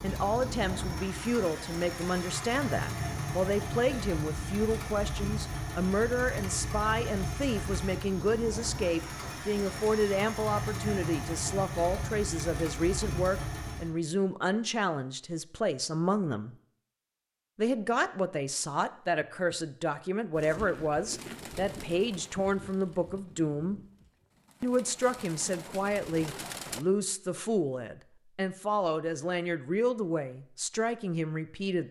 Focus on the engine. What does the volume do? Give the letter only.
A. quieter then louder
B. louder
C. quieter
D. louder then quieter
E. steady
E.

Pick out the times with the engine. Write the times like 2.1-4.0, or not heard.
0.0-13.9.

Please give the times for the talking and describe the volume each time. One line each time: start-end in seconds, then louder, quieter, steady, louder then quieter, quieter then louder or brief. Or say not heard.
0.0-16.6 steady
17.6-23.8 steady
24.6-31.8 steady.